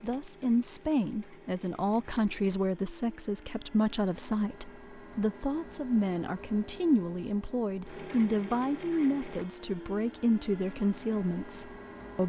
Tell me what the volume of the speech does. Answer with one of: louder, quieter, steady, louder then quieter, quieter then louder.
steady.